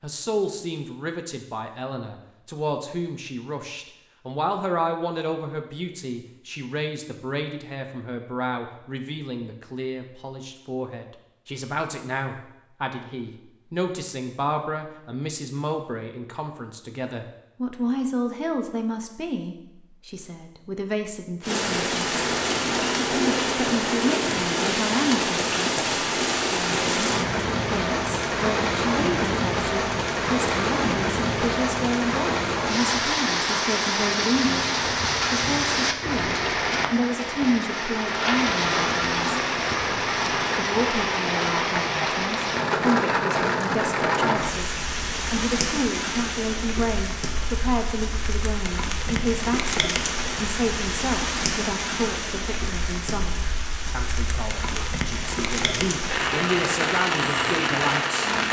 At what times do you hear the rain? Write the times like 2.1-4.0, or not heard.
21.4-58.4.